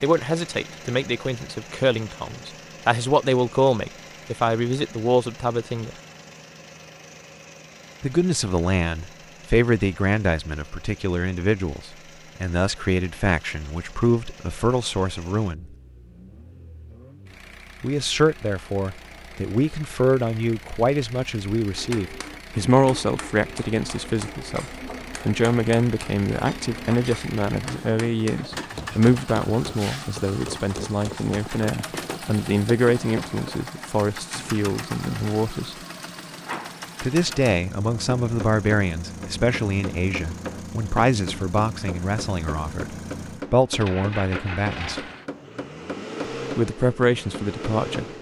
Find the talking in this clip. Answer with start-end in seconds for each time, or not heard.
0.0-5.9, 8.0-15.7, 17.8-35.8, 37.0-45.0, 46.5-48.0.